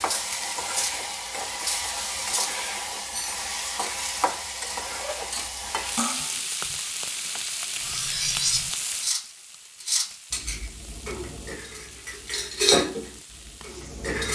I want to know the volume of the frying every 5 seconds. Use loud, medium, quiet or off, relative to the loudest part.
loud, loud, quiet.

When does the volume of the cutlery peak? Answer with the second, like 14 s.
13 s.